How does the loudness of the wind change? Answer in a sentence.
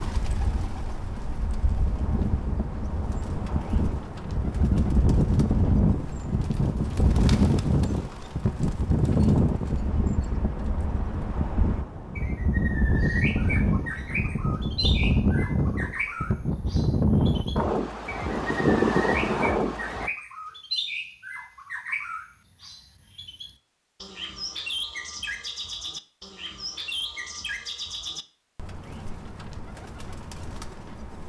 The loudness of the wind goes up.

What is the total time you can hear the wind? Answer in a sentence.
The wind can be heard for 20 seconds in total.